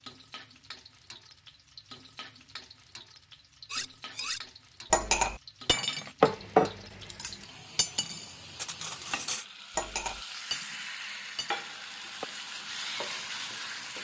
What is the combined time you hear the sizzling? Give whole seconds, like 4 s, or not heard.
14 s.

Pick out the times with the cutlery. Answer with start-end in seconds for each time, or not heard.
3.7-12.2.